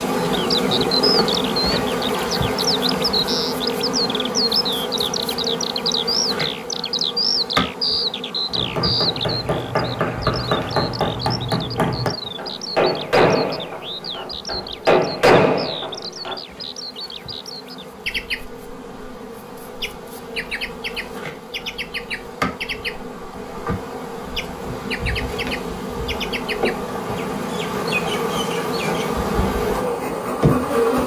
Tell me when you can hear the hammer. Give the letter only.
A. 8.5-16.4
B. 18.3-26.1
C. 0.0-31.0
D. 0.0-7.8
A.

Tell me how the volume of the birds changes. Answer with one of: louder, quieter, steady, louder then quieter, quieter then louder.
quieter.